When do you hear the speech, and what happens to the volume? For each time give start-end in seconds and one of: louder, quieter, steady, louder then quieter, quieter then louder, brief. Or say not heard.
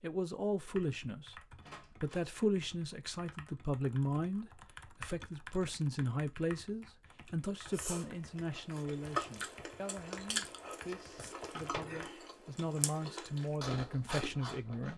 0.0-1.4 brief
2.0-14.9 quieter then louder.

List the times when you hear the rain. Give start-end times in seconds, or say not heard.
not heard.